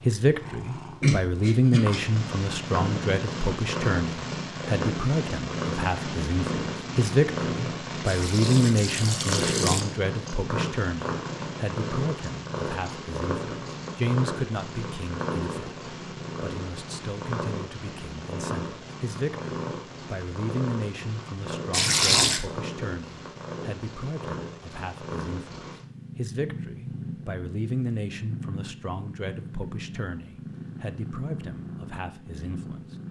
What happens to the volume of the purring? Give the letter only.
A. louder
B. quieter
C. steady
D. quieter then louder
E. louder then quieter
B.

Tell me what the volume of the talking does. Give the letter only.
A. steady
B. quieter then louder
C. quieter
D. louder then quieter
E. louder
C.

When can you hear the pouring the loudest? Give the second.
22 s.